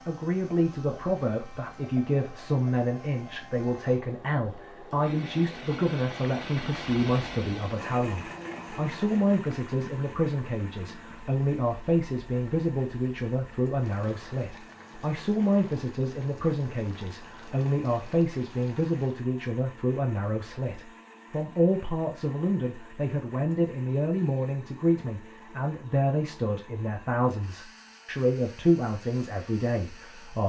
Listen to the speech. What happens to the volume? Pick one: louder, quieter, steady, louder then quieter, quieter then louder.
steady.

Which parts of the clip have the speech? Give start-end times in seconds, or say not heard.
0.0-30.4.